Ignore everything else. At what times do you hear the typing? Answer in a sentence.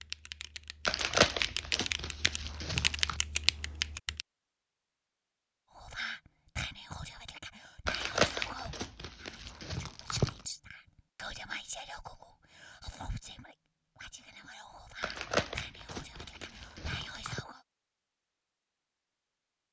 The typing can be heard from 0.0 to 4.2 s.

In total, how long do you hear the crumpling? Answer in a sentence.
The crumpling can be heard for 7 seconds in total.